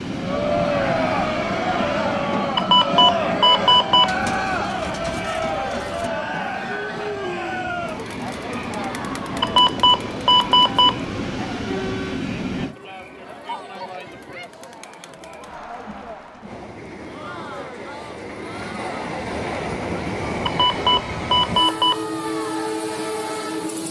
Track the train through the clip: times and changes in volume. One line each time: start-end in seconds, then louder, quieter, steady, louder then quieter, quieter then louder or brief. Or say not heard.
0.0-12.8 quieter then louder
16.4-23.8 louder.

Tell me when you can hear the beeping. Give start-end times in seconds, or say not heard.
2.5-4.2, 9.4-11.0, 20.4-22.1.